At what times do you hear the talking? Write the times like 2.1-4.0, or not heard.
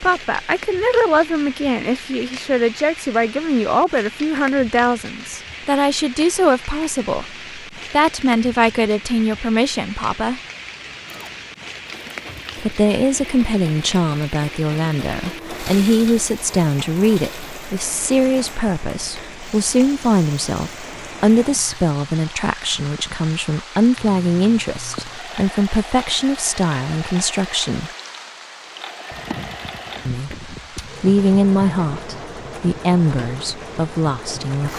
0.0-10.4, 12.6-27.9, 30.1-34.7.